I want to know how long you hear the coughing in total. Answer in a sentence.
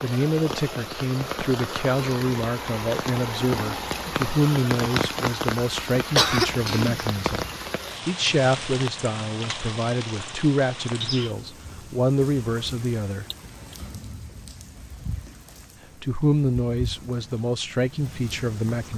The coughing can be heard for 2 seconds in total.